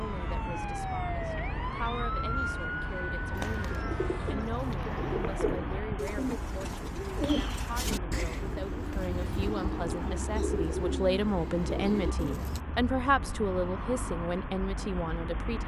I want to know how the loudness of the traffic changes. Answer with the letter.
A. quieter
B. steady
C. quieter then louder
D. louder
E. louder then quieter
B.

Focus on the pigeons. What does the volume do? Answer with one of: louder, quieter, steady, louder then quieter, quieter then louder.
steady.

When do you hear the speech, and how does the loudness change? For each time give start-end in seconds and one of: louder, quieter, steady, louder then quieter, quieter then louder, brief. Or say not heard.
0.0-15.6 louder.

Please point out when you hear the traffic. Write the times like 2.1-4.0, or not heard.
0.0-15.6.